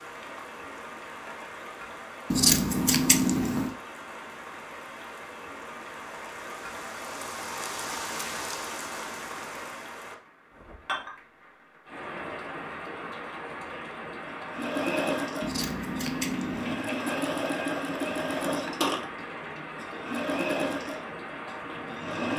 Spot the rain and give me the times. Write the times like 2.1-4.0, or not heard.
0.0-22.3.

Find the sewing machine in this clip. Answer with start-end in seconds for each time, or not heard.
14.4-22.3.